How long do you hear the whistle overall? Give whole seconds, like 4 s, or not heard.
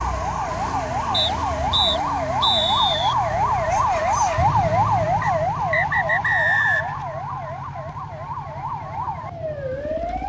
4 s.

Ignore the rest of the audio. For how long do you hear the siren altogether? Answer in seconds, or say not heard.
10 s.